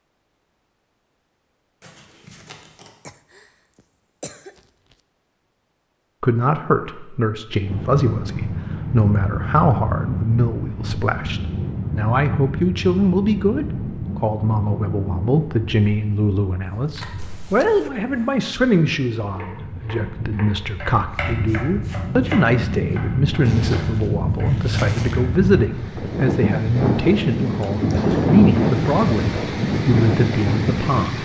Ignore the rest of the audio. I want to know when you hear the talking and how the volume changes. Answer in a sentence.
The talking can be heard from 6.2 to 31.1 s, at a steady volume.